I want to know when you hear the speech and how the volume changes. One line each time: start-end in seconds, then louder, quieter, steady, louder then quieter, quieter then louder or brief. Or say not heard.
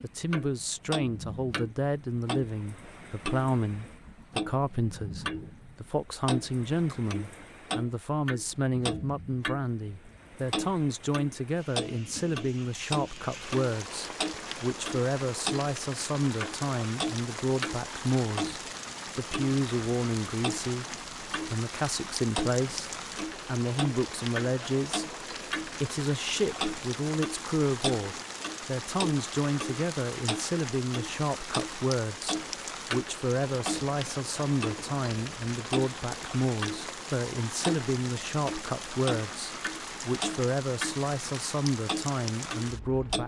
0.0-43.2 steady.